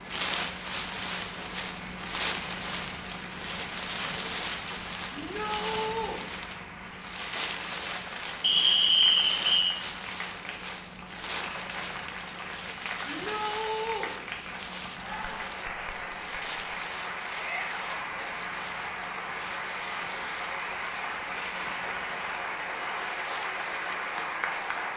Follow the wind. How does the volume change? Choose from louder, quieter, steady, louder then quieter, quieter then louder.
quieter.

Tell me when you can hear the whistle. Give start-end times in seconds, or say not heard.
8.4-9.8.